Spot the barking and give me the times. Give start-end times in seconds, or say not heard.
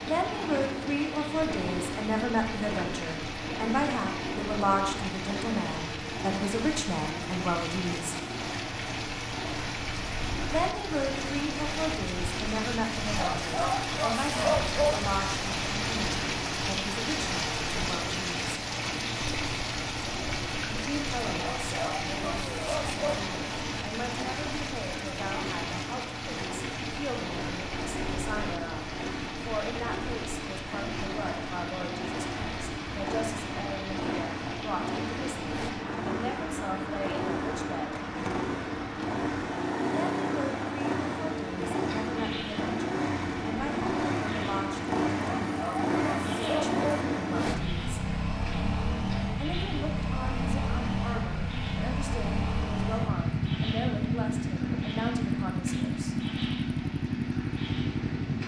13.2-15.0, 21.4-23.2, 45.2-47.0.